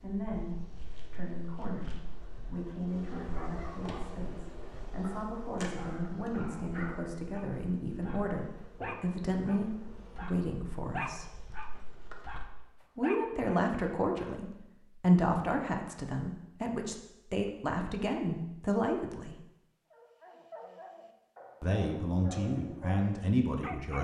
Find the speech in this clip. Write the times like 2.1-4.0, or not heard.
0.0-11.2, 12.9-19.4, 21.6-24.0.